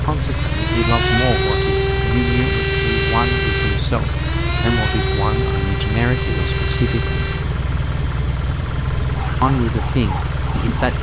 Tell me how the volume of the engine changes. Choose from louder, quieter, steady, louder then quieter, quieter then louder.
steady.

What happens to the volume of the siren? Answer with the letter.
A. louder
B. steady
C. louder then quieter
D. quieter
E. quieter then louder
D.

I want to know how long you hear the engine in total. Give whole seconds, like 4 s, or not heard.
11 s.